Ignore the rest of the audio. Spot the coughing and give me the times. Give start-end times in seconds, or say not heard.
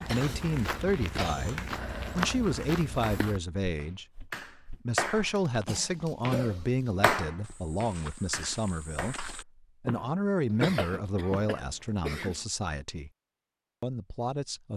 0.1-1.6, 5.4-7.0, 10.5-12.4.